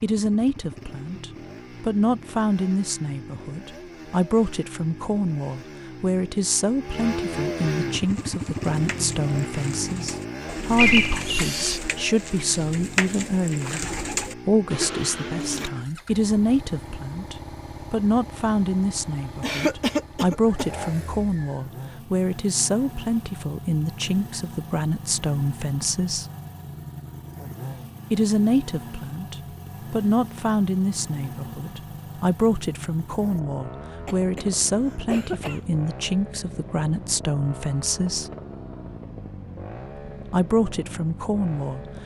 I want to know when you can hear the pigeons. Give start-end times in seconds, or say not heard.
8.0-15.7.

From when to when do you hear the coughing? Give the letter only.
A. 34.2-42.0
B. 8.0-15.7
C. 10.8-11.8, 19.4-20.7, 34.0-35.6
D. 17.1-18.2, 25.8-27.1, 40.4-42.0
C.